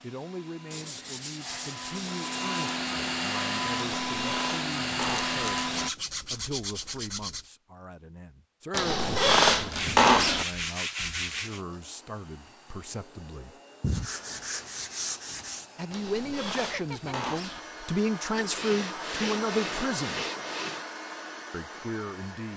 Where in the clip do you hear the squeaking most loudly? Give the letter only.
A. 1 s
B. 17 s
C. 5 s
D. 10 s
D.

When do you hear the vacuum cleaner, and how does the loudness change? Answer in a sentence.
You can hear the vacuum cleaner from 0.0 to 5.9 s, getting louder; and from 11.4 to 22.5 s, getting louder.